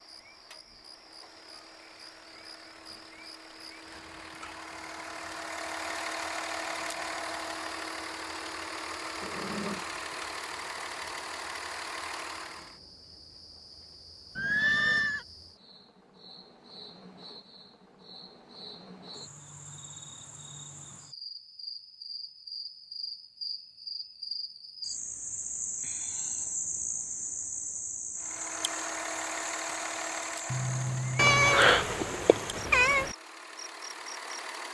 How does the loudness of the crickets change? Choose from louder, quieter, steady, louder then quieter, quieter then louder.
louder.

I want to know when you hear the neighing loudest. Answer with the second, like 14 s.
15 s.